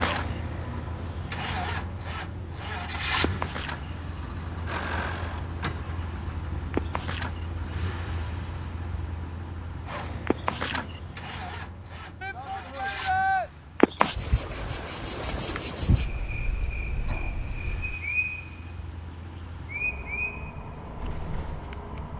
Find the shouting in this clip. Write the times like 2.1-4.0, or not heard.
12.2-13.5.